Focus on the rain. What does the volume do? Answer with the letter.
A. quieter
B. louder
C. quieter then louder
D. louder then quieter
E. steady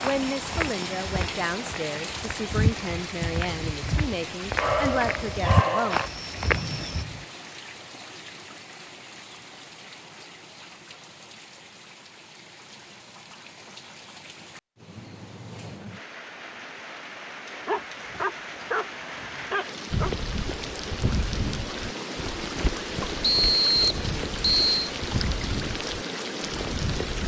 C.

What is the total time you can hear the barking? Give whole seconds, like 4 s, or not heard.
4 s.